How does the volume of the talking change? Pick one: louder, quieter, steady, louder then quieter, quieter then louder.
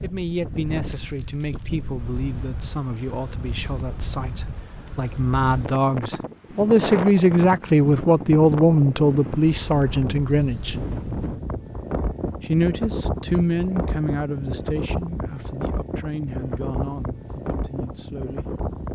louder then quieter.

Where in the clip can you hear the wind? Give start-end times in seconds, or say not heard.
0.0-18.9.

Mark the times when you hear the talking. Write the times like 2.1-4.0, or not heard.
0.0-10.8, 12.4-18.4.